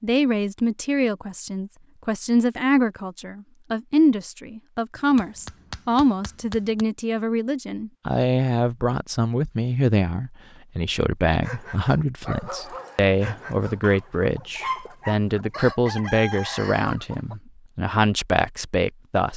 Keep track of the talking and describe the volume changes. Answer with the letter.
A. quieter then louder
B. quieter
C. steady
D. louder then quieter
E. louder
C.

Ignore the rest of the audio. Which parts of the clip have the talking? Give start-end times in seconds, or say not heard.
0.0-19.3.